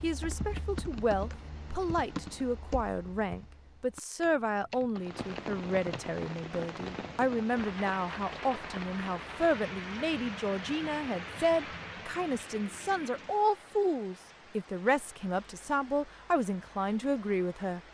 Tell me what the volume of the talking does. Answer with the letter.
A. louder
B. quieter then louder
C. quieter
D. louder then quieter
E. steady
E.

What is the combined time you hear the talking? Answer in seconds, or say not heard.
18 s.